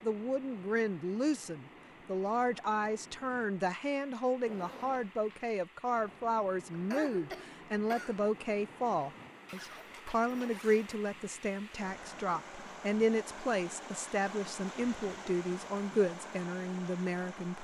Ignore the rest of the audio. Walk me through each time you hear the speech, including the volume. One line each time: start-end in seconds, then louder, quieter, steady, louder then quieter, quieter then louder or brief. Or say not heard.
0.0-17.5 steady.